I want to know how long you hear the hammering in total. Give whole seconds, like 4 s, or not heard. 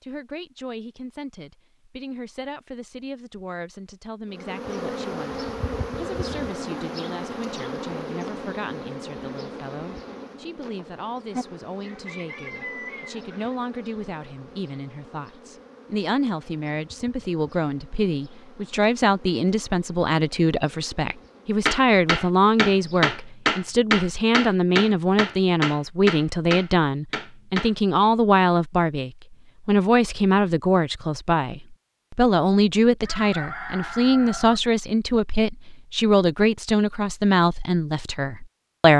6 s.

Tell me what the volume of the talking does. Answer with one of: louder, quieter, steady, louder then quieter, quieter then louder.
louder.